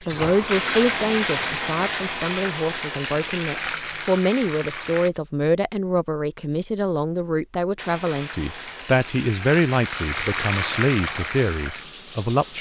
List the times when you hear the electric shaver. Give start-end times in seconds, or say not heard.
not heard.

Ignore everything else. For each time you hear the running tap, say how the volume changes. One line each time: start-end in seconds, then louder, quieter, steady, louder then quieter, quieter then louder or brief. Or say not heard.
0.0-5.1 quieter
7.8-12.5 louder then quieter.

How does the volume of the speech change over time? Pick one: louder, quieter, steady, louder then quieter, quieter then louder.
steady.